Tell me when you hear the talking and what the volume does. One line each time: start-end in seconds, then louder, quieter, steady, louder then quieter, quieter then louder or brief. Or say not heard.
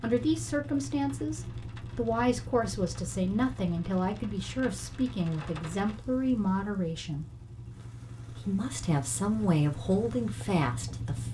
0.0-7.2 steady
8.4-11.2 brief.